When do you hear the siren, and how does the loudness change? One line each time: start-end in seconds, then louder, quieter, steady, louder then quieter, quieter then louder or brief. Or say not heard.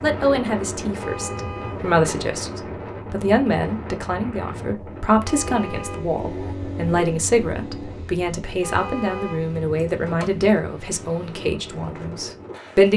not heard.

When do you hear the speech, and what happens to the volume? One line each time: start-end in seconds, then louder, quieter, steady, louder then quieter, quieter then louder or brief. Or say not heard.
0.0-12.9 steady.